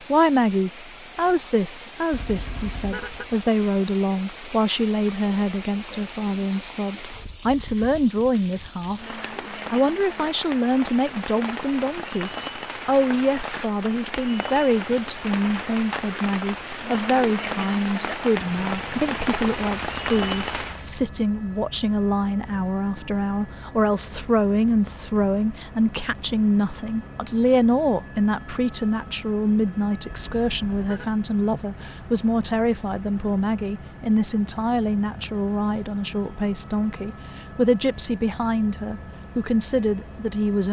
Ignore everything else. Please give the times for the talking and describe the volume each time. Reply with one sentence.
You can hear the talking from 0.1 to 40.6 s, at a steady volume.